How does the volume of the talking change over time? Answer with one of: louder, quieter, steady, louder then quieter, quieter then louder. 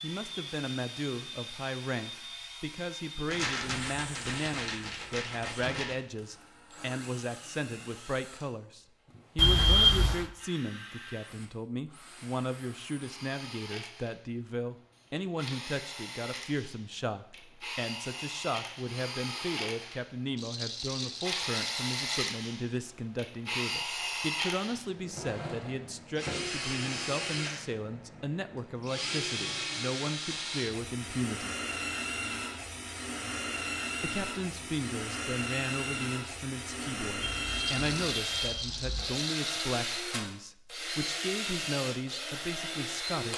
steady.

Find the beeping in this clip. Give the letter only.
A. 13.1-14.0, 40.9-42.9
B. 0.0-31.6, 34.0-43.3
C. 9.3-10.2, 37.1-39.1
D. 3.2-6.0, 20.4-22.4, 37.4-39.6
C.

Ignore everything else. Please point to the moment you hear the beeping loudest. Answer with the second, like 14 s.
10 s.